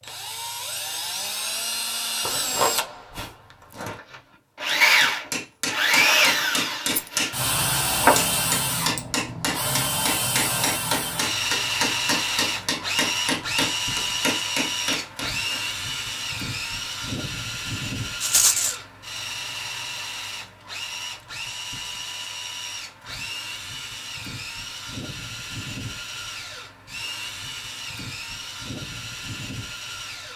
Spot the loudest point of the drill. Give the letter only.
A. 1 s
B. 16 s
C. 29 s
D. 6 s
D.